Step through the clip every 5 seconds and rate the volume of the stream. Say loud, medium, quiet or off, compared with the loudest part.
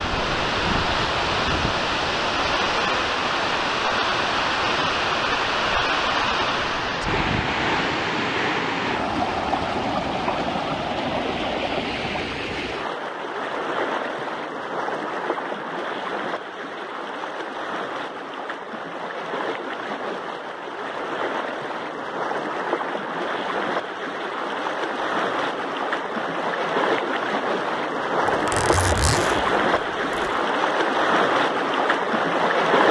loud, loud, medium, medium, medium, loud, loud.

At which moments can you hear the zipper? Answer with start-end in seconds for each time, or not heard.
28.2-30.4.